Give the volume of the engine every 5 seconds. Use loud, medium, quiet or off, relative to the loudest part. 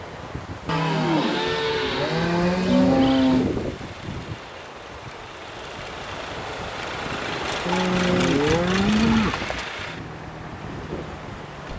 quiet, loud, medium.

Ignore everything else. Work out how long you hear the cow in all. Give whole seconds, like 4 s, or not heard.
5 s.